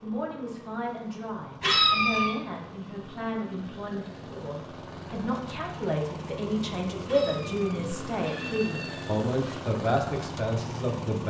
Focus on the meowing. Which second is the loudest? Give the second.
2 s.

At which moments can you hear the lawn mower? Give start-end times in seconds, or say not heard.
0.0-11.2.